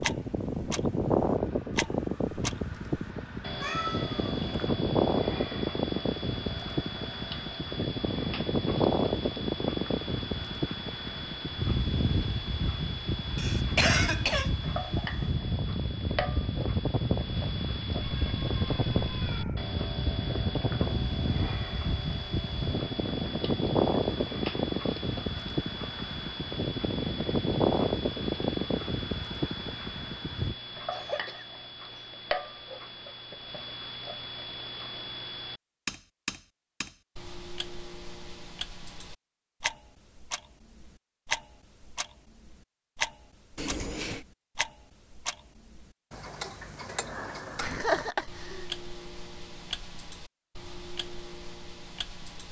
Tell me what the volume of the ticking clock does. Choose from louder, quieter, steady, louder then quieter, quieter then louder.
steady.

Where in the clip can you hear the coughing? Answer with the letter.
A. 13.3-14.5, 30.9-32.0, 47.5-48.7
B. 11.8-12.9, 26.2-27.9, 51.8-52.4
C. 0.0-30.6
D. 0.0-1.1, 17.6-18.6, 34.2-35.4
A.